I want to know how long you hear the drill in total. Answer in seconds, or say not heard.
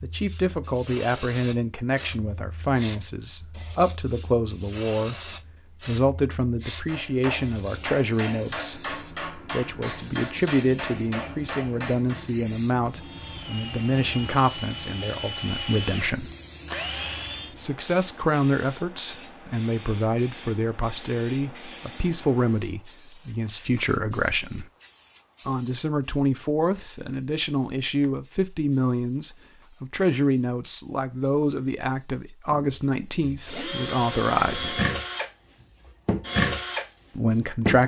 10 s.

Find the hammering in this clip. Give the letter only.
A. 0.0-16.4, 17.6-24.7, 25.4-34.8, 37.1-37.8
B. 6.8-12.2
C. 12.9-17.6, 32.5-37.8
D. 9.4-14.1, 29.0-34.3
B.